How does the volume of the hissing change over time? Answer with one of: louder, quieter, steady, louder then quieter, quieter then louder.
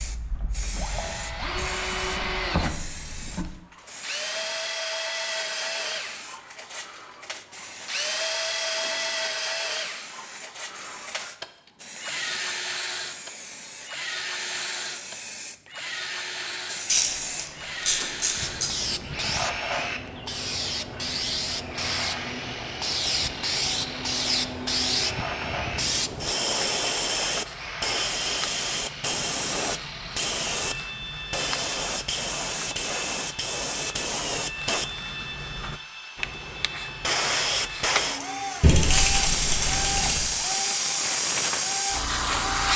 louder.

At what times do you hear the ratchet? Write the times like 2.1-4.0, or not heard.
16.9-18.7, 38.6-40.3.